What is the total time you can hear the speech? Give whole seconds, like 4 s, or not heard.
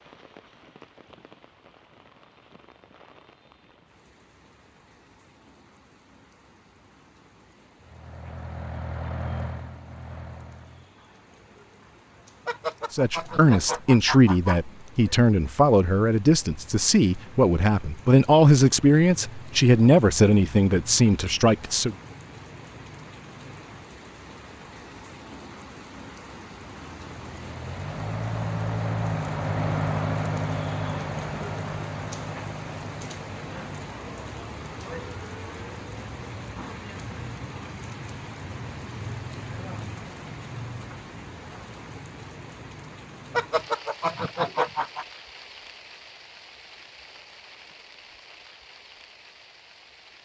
9 s.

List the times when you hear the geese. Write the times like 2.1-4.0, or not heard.
12.4-14.6, 43.4-45.0.